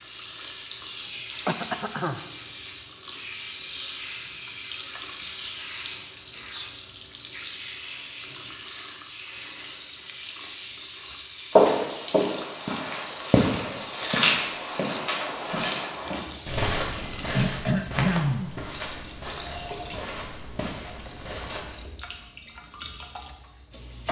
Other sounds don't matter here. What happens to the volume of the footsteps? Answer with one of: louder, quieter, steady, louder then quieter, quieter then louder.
quieter.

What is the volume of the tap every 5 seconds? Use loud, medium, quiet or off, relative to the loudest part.
loud, loud, loud, loud, medium.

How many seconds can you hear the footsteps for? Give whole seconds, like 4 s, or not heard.
10 s.